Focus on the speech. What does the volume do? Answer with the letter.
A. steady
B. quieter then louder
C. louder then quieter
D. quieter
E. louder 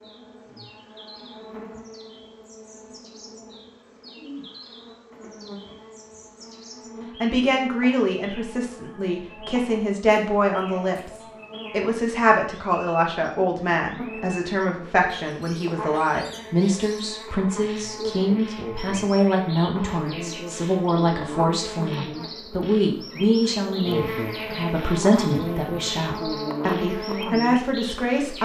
A.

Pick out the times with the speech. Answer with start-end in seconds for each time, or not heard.
7.2-28.3.